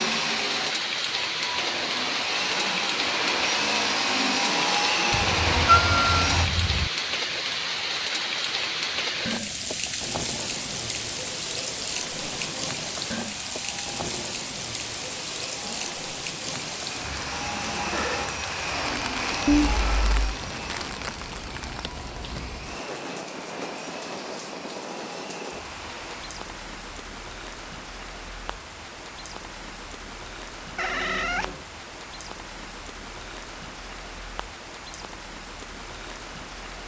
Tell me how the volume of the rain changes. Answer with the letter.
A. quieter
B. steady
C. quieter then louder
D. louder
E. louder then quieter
A.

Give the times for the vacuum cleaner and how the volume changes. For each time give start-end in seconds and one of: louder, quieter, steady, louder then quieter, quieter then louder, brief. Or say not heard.
0.0-6.5 louder
12.1-26.4 louder then quieter.